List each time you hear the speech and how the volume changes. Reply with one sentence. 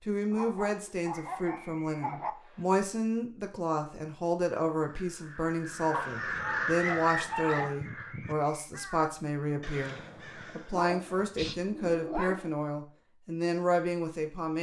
You can hear the speech from 0.0 to 14.5 s, at a steady volume.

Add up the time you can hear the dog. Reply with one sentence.
The dog can be heard for 6 seconds in total.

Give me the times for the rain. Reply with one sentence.
You can't hear the rain here.